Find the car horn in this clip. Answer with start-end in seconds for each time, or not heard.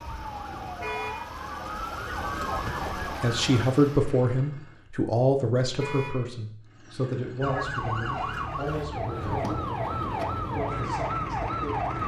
0.8-1.2, 5.8-6.2, 8.2-8.6.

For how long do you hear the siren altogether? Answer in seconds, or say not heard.
8 s.